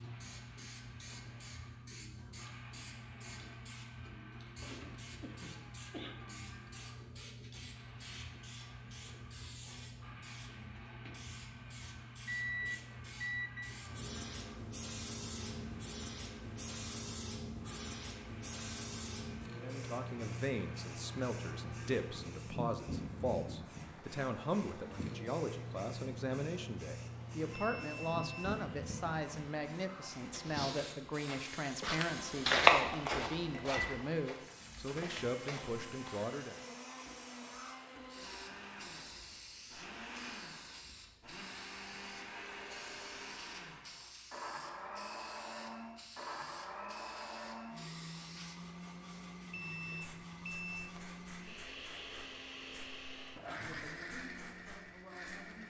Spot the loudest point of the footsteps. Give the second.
33 s.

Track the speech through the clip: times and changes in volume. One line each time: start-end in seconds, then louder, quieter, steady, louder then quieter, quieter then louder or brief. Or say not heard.
19.6-36.6 steady
53.6-55.6 brief.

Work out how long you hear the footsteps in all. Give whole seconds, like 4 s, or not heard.
6 s.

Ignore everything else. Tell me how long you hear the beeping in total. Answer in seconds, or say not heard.
4 s.